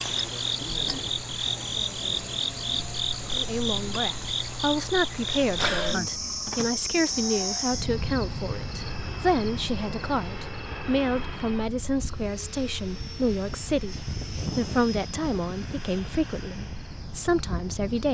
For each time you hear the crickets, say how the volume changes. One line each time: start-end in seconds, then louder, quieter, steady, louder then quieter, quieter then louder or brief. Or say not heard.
0.0-18.1 quieter.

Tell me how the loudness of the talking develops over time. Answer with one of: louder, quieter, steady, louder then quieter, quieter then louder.
steady.